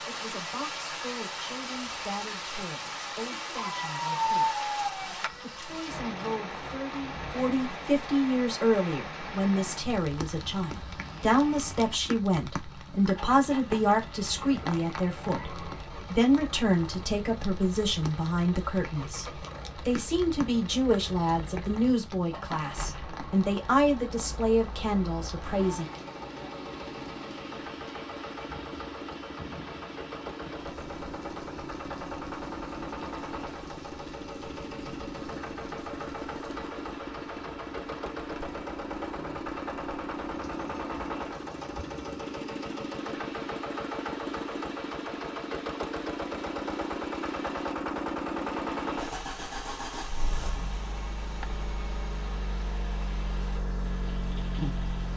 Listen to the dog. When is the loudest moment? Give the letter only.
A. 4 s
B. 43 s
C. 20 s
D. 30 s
A.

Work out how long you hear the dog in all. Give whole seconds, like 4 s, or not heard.
2 s.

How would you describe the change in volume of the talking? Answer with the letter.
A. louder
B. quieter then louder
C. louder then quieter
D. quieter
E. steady
A.